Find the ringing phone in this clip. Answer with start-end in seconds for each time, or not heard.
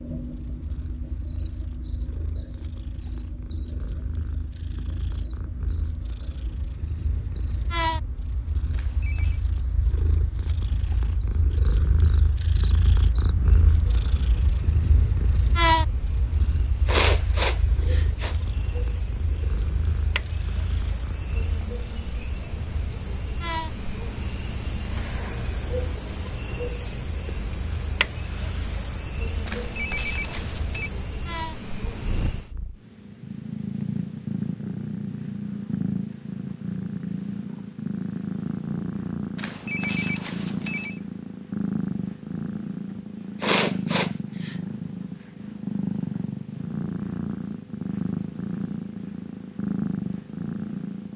8.7-9.4, 29.4-30.9, 39.4-41.0.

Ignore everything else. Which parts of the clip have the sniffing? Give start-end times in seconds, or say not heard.
16.4-18.4, 42.9-44.5.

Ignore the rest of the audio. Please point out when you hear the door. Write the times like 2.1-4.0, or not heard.
not heard.